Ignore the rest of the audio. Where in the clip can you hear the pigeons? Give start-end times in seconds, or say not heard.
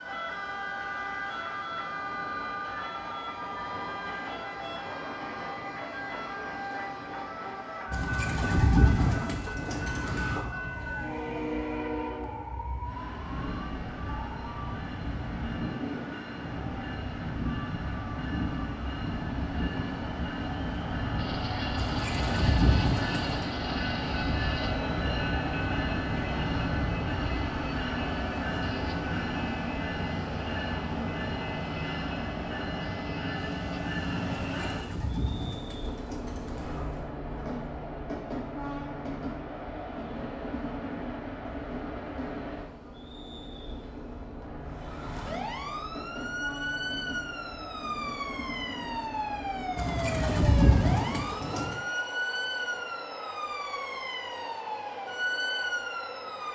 7.9-10.5, 21.8-23.6, 34.5-37.1, 49.8-51.8.